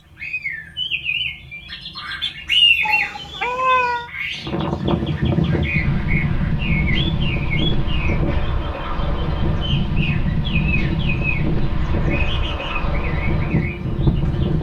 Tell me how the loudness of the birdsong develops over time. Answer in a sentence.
The volume of the birdsong goes down.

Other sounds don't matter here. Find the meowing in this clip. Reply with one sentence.
You can hear the meowing from 2.8 to 4.1 s.